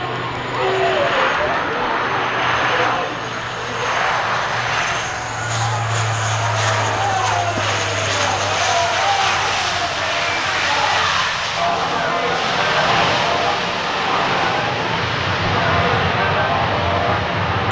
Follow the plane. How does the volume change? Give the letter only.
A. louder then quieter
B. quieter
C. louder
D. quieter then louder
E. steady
E.